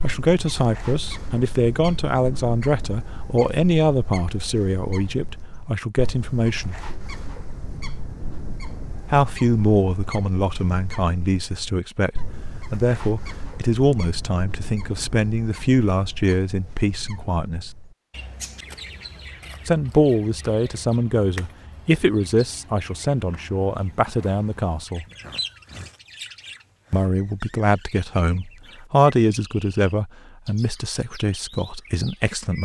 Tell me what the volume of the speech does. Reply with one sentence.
The loudness of the speech stays about the same.